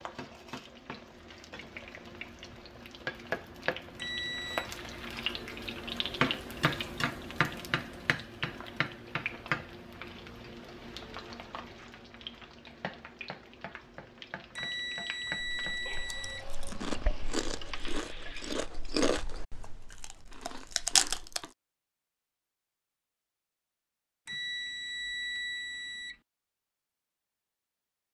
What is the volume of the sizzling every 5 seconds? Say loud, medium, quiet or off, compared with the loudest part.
medium, loud, medium, medium, off, off.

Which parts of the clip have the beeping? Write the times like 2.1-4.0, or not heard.
4.0-4.7, 14.6-16.4, 24.2-26.1.